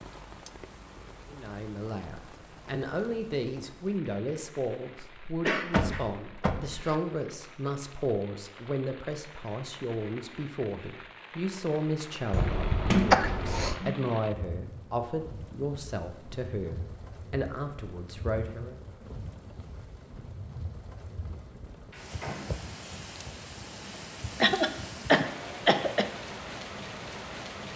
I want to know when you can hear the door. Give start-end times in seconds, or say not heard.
5.7-6.8, 12.9-14.1, 21.9-22.6.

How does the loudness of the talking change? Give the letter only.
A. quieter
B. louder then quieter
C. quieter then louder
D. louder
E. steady
E.